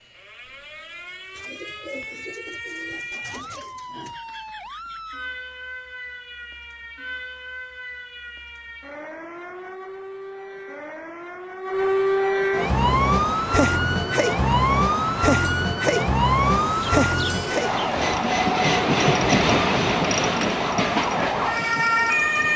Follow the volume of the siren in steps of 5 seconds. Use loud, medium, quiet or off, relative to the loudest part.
quiet, quiet, loud, loud, loud.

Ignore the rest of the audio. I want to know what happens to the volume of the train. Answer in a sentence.
The loudness of the train goes up, then down.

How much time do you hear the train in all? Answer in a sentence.
The train can be heard for 10 seconds in total.